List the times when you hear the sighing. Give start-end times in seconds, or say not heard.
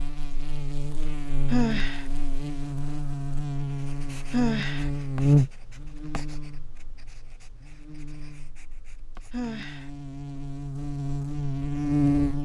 1.5-2.0, 4.3-4.9, 9.3-9.9.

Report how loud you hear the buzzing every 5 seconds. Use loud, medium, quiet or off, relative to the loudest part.
medium, loud, loud.